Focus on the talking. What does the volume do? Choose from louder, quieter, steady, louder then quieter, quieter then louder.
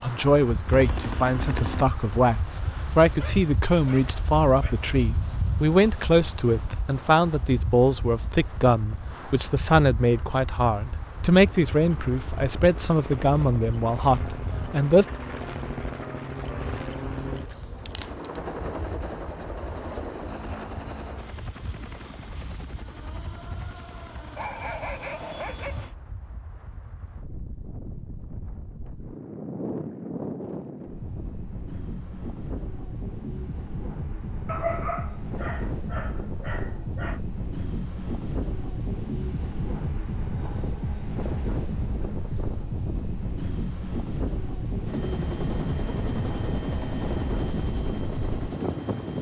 steady.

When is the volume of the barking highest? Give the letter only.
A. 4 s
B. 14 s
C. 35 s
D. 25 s
C.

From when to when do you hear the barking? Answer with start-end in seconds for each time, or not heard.
3.2-4.9, 24.4-25.9, 34.5-37.2.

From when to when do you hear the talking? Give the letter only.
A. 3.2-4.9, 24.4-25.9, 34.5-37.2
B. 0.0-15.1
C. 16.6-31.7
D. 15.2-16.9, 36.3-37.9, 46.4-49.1
B.